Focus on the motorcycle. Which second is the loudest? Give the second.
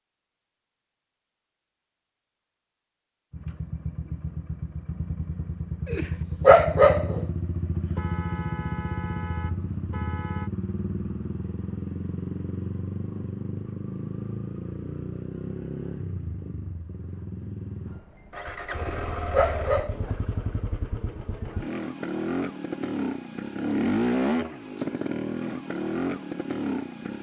24 s.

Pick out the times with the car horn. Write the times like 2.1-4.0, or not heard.
8.0-10.5.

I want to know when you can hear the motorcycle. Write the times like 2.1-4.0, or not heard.
3.3-27.1.